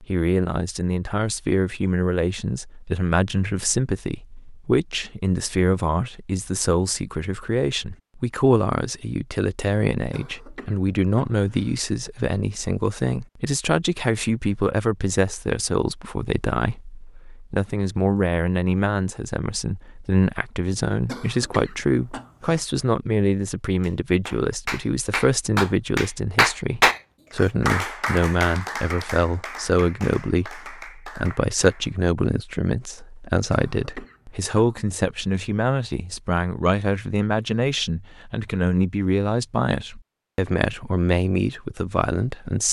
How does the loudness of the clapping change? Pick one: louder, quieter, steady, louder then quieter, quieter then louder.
louder then quieter.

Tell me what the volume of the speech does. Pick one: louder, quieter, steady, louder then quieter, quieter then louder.
steady.